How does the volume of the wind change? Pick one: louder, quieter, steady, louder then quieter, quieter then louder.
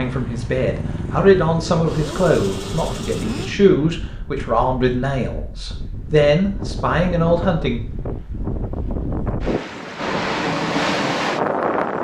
louder.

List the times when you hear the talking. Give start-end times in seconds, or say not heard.
0.0-7.8.